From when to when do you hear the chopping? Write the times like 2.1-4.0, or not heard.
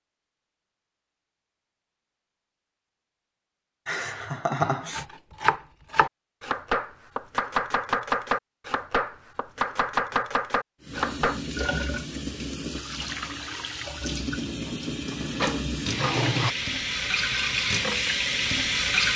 4.9-11.4.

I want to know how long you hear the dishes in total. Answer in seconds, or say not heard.
2 s.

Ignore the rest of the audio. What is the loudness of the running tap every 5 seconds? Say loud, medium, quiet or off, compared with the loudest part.
off, off, medium, loud.